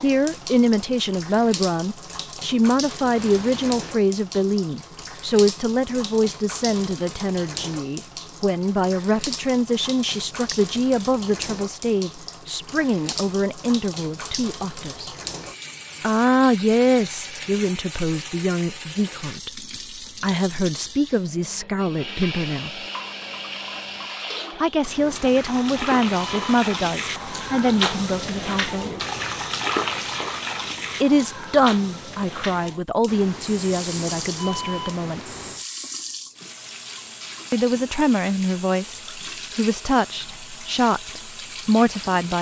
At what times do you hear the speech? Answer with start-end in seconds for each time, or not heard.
0.0-15.1, 16.0-22.8, 24.6-28.9, 31.0-35.2, 37.5-42.3.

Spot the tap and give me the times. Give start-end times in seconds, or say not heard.
0.0-42.3.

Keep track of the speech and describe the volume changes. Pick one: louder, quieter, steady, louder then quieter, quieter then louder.
steady.